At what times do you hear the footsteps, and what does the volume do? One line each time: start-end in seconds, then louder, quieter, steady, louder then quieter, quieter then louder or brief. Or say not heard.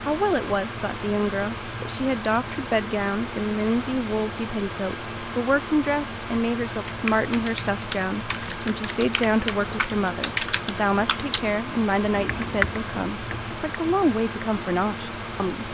not heard.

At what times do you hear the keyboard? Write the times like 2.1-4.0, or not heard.
6.8-13.6.